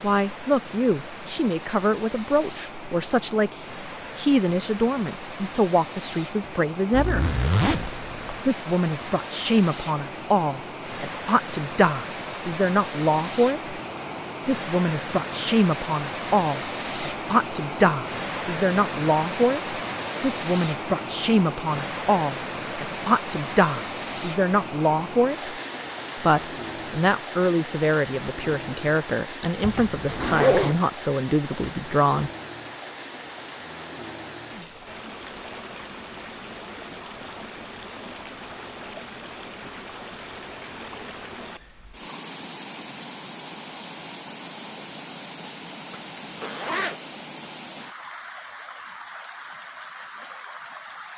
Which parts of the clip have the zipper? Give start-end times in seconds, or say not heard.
6.9-8.4, 29.6-30.8, 45.9-47.0.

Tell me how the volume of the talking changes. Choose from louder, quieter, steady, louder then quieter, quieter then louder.
steady.